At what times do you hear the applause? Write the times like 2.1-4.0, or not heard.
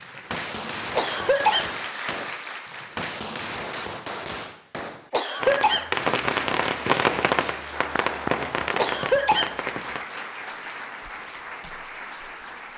0.0-3.1, 5.9-12.7.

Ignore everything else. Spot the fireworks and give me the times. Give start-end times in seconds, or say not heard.
0.0-10.1.